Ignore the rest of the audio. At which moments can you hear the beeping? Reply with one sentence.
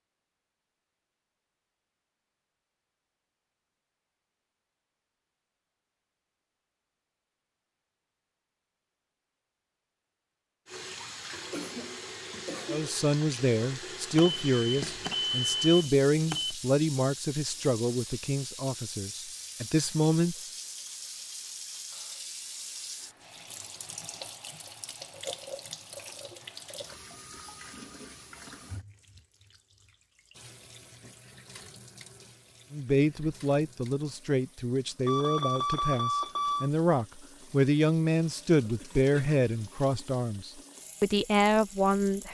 You can hear the beeping from 14.2 to 16.6 s and from 35.0 to 36.7 s.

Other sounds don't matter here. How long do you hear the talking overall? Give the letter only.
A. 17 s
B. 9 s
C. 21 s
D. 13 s
A.